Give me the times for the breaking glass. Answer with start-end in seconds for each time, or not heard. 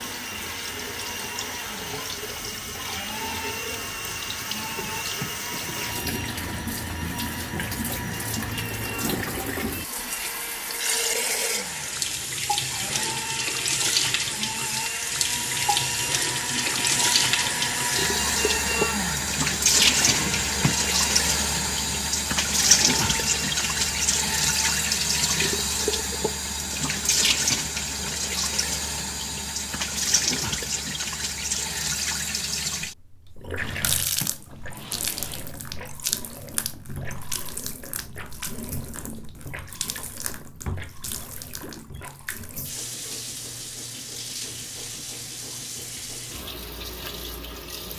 not heard.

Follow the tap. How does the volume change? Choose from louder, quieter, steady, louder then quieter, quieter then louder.
louder then quieter.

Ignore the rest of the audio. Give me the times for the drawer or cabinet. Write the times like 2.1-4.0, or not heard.
4.5-6.5, 20.0-20.9, 33.5-35.5.